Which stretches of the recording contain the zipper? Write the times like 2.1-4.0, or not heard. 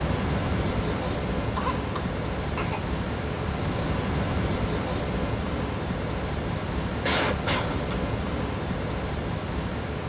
not heard.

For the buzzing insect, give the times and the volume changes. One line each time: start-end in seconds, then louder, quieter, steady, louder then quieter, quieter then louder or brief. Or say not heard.
0.0-10.0 steady.